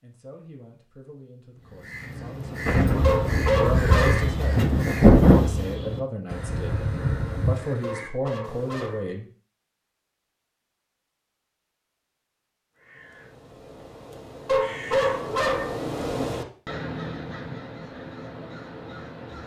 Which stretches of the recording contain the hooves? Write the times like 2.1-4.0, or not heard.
not heard.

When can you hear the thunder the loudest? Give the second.
5 s.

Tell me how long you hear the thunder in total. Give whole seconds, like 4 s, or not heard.
3 s.